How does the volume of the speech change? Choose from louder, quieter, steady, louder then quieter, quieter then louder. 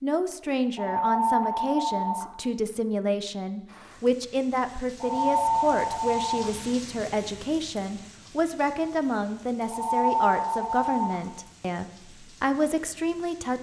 steady.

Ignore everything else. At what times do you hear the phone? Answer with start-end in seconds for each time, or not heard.
0.8-2.2, 5.0-6.5, 9.7-11.2.